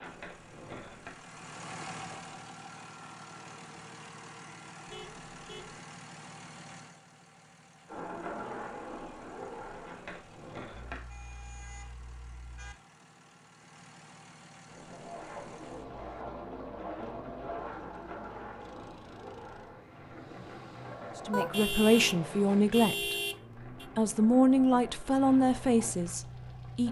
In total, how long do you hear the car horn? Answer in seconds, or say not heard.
5 s.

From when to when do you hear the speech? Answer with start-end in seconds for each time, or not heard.
21.2-23.1, 23.9-26.8.